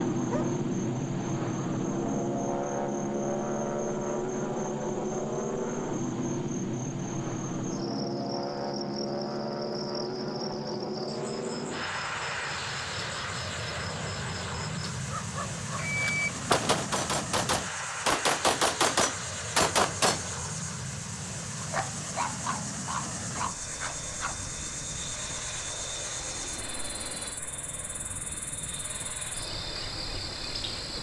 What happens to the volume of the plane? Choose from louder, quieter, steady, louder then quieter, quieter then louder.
quieter.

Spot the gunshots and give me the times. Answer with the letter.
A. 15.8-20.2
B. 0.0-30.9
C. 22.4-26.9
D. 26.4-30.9
A.